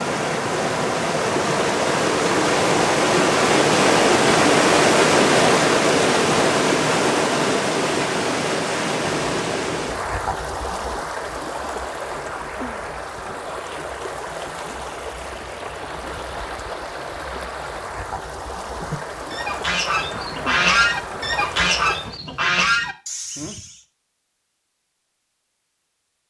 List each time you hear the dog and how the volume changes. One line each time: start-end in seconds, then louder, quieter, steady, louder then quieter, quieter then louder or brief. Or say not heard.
not heard.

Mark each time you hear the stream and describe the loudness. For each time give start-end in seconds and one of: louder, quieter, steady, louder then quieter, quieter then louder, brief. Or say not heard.
0.0-22.1 quieter.